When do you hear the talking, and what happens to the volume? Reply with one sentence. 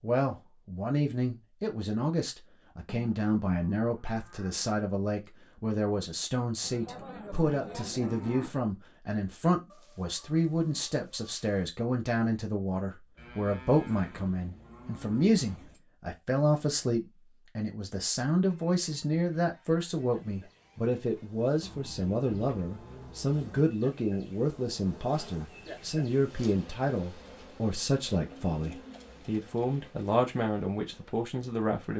The talking can be heard from 0.0 to 31.9 s, at a steady volume.